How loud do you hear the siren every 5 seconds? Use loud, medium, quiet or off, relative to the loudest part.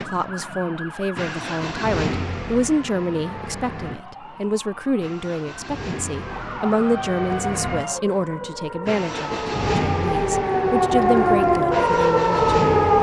quiet, quiet, loud.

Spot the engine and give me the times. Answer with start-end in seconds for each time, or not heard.
0.0-12.9.